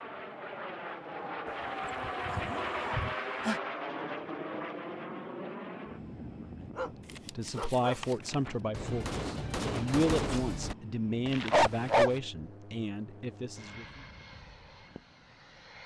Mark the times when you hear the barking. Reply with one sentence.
The barking can be heard from 2.0 to 3.6 s, from 6.8 to 8.5 s and from 11.2 to 12.2 s.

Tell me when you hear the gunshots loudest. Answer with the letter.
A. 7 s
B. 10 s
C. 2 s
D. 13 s
B.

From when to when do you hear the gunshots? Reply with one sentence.
You can hear the gunshots from 8.7 to 10.8 s.